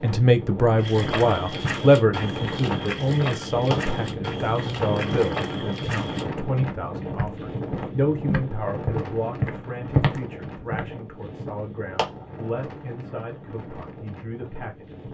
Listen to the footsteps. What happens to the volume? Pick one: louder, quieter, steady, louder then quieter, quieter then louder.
louder.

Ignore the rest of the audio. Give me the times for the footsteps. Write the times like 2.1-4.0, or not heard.
0.8-10.8.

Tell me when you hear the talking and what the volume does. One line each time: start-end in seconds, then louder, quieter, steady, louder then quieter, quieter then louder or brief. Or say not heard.
0.0-15.1 quieter.